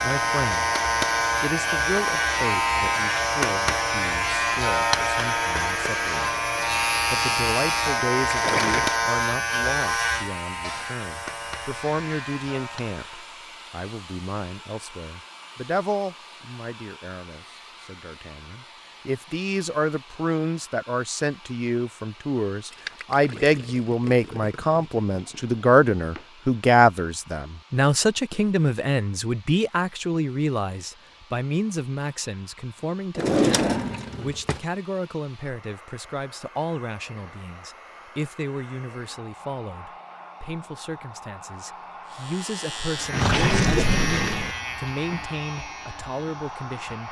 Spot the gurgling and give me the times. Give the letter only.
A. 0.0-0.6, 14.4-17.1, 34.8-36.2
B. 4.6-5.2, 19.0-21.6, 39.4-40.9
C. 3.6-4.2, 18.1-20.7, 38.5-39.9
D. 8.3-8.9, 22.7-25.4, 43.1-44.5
D.